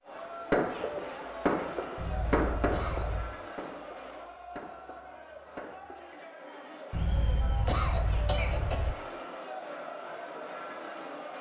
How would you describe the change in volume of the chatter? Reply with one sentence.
The loudness of the chatter goes down, then up.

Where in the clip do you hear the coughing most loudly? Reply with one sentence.
The volume of the coughing peaks at 8 seconds.